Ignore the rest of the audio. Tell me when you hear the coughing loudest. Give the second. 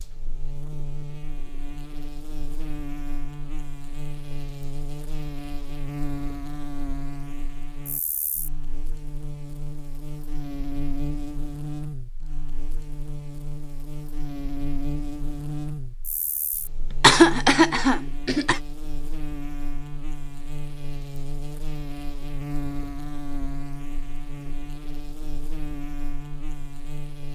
17 s.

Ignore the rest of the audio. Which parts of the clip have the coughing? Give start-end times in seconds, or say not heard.
17.0-18.6.